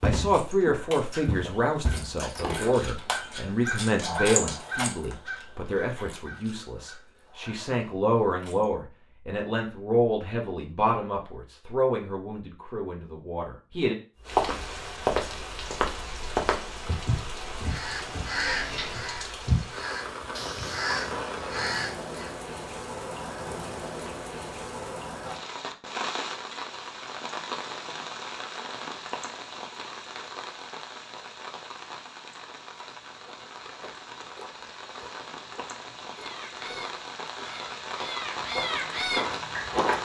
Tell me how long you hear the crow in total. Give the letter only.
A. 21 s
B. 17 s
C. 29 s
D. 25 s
B.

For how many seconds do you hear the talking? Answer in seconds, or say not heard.
14 s.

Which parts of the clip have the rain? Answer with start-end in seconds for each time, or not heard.
14.2-40.0.